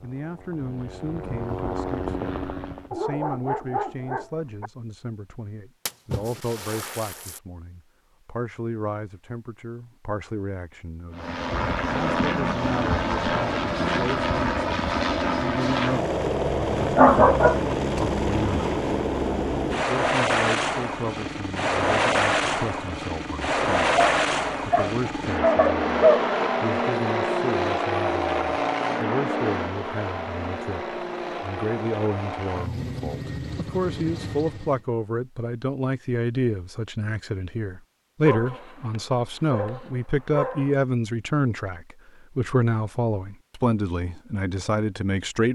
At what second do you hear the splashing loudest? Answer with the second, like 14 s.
6 s.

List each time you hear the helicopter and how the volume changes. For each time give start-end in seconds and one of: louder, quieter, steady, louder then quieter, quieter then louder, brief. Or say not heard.
0.0-2.9 brief
11.1-34.9 quieter.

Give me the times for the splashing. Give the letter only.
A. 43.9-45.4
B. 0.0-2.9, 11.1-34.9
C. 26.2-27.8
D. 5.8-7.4
D.